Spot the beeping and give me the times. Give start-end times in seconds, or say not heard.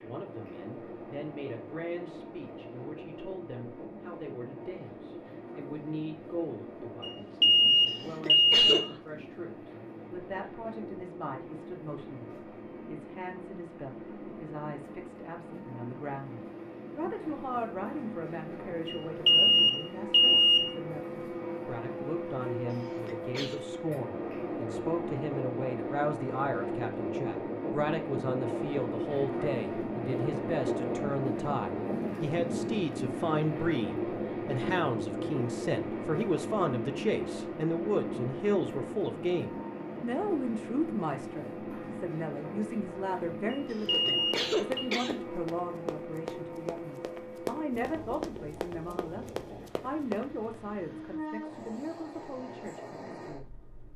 7.0-8.7, 18.9-20.7, 43.5-44.9.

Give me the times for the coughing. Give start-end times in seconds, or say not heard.
7.8-9.0, 22.7-23.6, 43.7-45.1.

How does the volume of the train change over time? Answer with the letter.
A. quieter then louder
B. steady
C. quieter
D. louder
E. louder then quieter
E.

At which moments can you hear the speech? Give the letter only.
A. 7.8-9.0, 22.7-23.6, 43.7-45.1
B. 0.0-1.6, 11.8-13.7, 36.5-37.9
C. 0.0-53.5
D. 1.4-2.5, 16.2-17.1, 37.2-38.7
C.